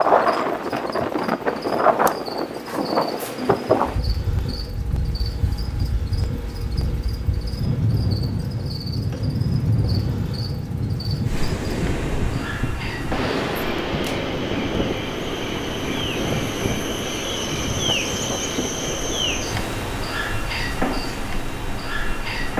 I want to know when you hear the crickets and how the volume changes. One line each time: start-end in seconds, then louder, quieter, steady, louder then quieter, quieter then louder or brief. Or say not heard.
0.0-22.5 louder.